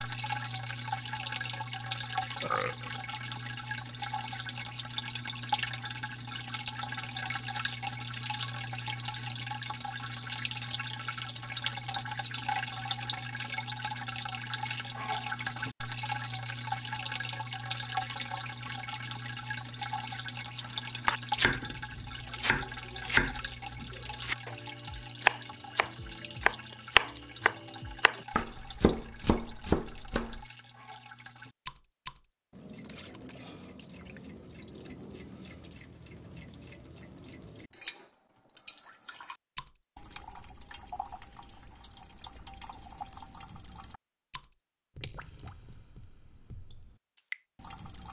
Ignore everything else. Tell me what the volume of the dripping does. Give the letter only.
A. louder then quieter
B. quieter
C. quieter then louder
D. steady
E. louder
B.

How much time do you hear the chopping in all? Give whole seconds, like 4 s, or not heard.
9 s.